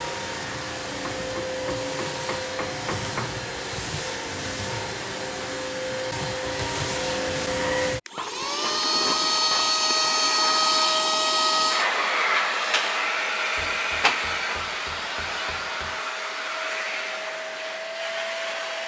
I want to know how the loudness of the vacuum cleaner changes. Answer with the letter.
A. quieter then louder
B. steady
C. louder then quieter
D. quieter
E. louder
C.